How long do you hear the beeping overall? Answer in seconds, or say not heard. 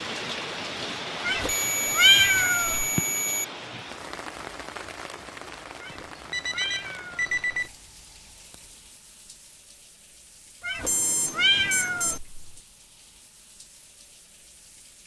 5 s.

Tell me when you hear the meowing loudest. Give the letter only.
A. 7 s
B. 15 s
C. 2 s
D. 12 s
C.